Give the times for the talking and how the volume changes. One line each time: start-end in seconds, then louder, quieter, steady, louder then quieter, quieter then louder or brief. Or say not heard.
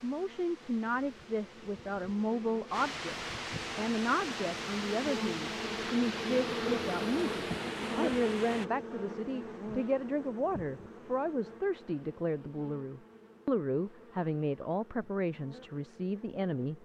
0.0-16.8 steady.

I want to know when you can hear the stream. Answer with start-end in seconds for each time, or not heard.
0.0-8.7.